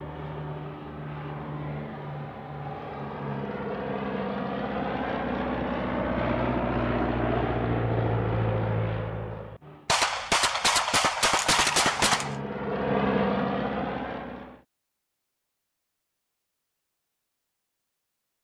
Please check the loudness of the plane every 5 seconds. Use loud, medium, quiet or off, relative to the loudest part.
medium, loud, loud, off.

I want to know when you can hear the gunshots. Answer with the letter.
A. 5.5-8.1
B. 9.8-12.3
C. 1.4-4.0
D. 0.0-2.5
B.